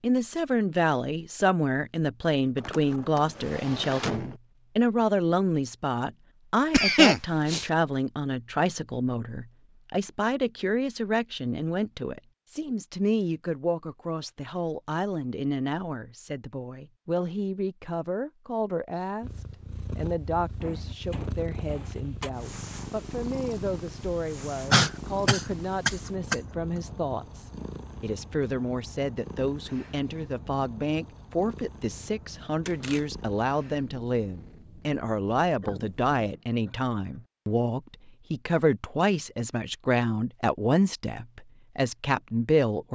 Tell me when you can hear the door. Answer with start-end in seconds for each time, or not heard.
2.5-4.4, 20.6-22.3, 32.6-33.2.